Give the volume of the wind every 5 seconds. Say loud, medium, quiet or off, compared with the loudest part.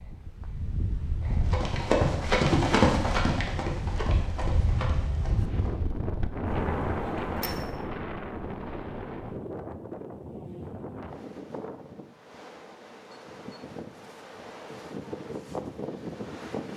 loud, loud, medium, loud.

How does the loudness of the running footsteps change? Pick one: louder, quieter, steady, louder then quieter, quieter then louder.
quieter.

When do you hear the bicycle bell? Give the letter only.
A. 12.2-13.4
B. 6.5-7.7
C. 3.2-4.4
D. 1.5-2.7
B.